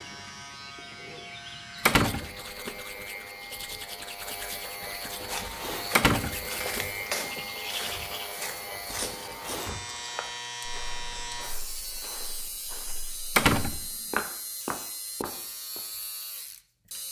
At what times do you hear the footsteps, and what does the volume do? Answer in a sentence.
You can hear the footsteps from 5.2 to 15.8 s, getting quieter then louder.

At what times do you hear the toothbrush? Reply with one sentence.
You can hear the toothbrush from 1.9 to 8.3 s.